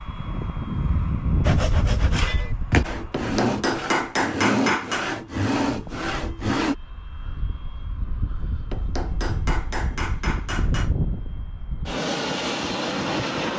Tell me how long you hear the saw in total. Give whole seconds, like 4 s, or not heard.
5 s.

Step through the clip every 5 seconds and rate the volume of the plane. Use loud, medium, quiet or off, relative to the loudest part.
loud, medium, loud.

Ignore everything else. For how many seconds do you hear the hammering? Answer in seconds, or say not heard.
4 s.